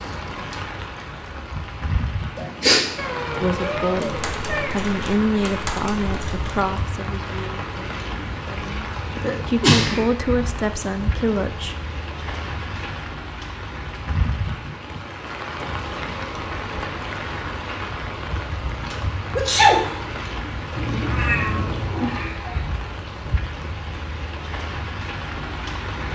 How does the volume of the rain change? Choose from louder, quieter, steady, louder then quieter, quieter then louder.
steady.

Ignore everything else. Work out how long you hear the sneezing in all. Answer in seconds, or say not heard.
3 s.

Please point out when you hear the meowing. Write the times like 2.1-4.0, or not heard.
3.0-4.8, 20.8-22.6.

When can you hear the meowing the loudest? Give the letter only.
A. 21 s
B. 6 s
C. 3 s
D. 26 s
A.